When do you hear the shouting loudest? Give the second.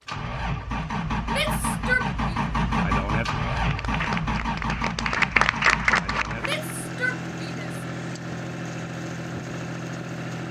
2 s.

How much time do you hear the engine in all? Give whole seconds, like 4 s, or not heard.
10 s.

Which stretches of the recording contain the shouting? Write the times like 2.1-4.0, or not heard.
1.2-2.4, 6.4-7.7.